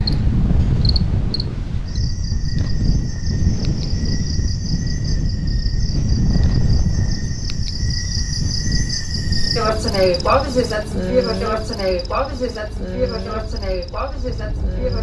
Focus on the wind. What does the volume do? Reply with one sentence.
The volume of the wind goes down.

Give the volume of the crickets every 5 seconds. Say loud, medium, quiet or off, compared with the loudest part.
quiet, medium, loud.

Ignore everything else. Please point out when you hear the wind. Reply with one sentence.
The wind can be heard from 0.0 to 14.9 s.